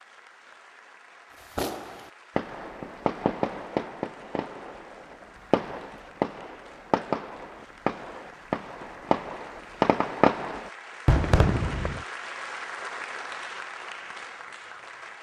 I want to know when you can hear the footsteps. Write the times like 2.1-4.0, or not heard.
not heard.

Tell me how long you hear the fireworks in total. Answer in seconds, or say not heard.
11 s.